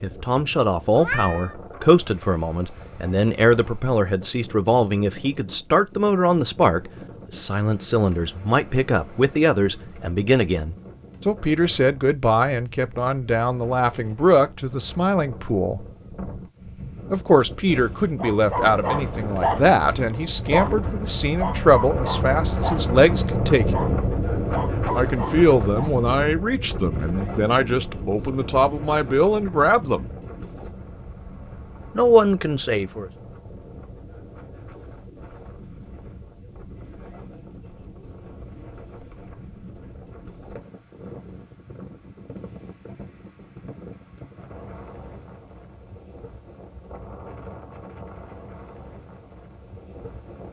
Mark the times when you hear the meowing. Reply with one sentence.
The meowing can be heard from 0.9 to 1.6 s.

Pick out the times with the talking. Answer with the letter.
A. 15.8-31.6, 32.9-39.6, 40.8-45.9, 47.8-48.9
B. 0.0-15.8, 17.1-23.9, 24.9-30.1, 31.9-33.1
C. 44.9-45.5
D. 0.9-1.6
B.